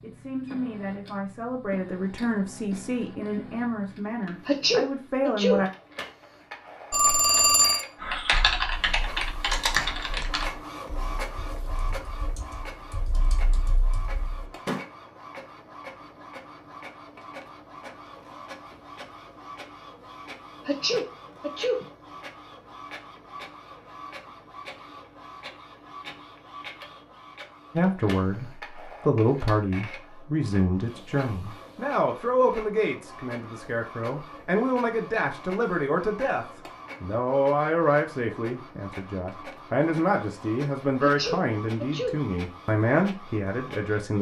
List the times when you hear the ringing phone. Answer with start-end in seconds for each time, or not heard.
6.9-7.8.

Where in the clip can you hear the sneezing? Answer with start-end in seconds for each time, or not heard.
4.5-5.7, 20.6-21.9, 41.0-42.2.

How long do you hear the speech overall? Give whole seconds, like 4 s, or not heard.
22 s.